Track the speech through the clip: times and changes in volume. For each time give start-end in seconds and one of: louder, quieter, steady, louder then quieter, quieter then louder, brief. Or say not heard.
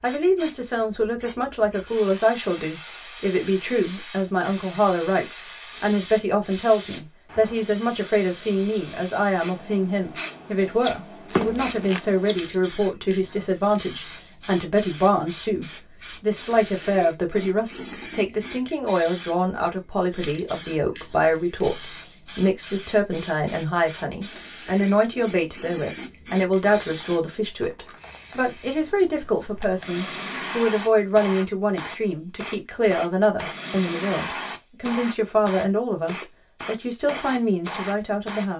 0.0-38.5 steady.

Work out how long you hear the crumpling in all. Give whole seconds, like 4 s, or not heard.
3 s.